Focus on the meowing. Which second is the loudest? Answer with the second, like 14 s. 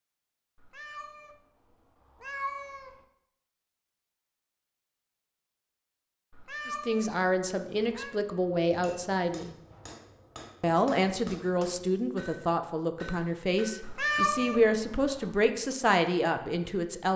14 s.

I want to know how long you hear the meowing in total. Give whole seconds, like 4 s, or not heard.
5 s.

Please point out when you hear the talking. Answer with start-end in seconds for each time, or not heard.
6.7-9.6, 10.6-17.1.